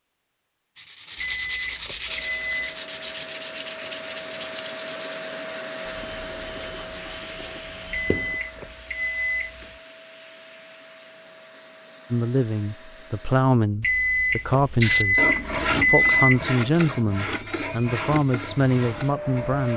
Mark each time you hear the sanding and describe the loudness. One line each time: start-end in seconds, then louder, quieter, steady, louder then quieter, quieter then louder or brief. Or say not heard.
0.8-8.4 quieter
14.8-19.7 quieter.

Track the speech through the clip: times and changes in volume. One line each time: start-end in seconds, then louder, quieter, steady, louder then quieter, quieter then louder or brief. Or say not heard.
12.1-19.7 steady.